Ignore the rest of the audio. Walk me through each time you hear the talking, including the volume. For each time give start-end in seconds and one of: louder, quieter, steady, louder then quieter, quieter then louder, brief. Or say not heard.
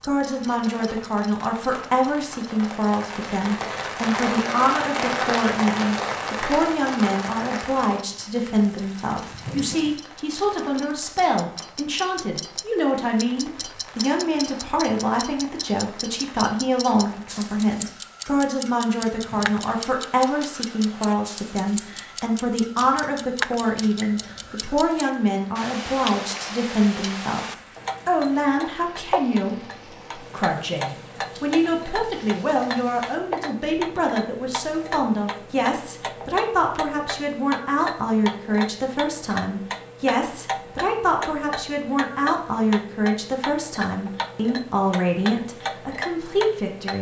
0.1-46.9 steady.